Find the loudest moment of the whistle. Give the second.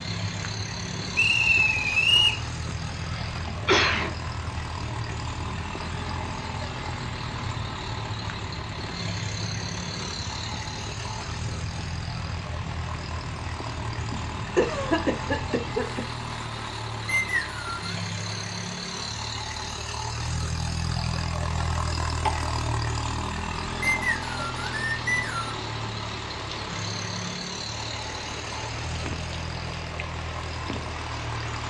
2 s.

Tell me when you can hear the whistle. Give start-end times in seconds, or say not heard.
1.1-2.4, 17.1-17.8, 23.8-25.6.